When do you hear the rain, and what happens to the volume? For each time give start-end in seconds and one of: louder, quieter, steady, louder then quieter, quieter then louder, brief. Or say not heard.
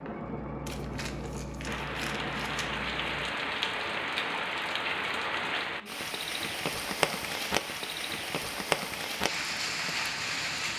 1.6-10.7 steady.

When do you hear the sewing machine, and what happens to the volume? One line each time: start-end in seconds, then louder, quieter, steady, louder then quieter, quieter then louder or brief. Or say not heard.
0.0-4.0 quieter.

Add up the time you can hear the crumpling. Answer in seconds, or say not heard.
2 s.